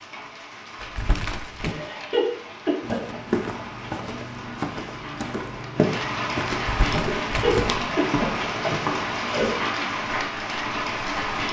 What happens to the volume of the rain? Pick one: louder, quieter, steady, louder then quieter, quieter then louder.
louder.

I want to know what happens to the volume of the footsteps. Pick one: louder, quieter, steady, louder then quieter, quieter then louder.
quieter.